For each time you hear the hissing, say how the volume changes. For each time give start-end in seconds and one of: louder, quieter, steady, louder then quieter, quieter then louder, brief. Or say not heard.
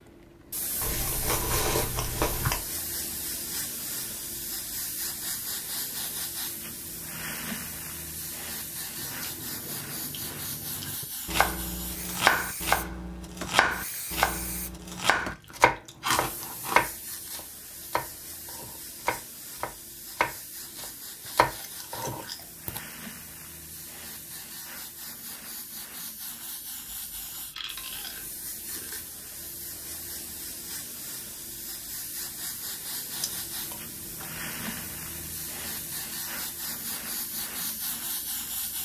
0.0-38.8 quieter then louder.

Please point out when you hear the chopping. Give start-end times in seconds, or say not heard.
11.2-22.8.